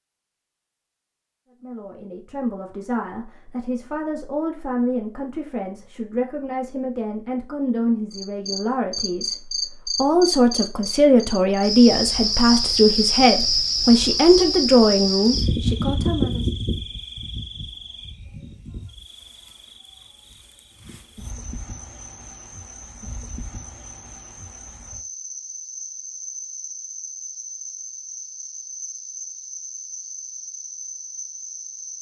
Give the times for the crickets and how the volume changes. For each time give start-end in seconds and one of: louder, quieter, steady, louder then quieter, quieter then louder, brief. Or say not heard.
8.1-31.9 quieter then louder.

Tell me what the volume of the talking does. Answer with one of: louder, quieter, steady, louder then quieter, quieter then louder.
louder.